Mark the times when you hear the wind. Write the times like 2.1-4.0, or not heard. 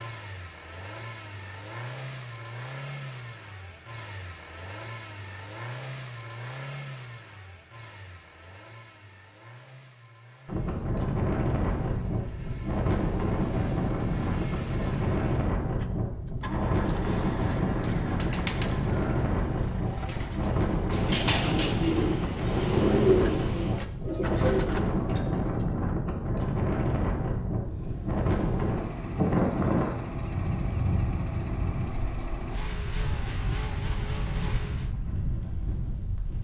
10.4-36.3.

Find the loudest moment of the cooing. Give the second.
23 s.